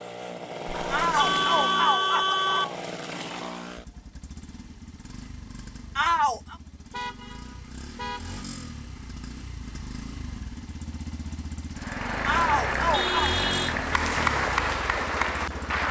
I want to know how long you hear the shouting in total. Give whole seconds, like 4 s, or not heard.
3 s.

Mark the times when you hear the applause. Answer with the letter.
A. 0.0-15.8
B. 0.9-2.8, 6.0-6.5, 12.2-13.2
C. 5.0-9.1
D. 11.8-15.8
D.